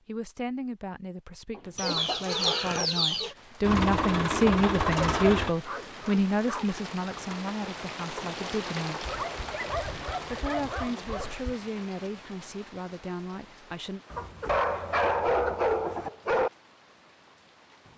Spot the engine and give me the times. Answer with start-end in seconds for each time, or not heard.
3.6-5.5.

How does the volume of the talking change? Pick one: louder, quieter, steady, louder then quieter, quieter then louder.
louder then quieter.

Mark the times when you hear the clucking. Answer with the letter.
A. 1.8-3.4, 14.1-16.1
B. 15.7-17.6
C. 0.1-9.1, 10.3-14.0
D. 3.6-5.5
A.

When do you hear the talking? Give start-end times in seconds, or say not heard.
0.1-9.1, 10.3-14.0.